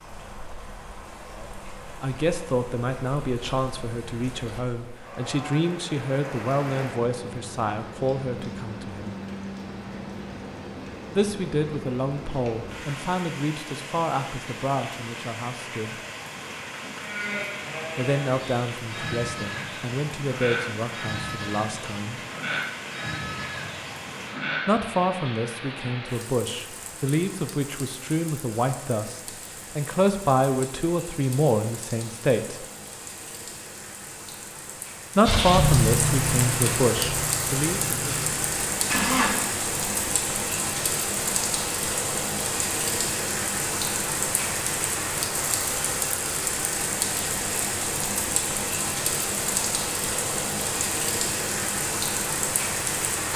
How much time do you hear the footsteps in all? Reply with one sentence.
You can't hear the footsteps here.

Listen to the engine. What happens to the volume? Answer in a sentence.
The volume of the engine goes down.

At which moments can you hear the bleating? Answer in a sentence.
You can hear the bleating from 17.0 to 24.8 s.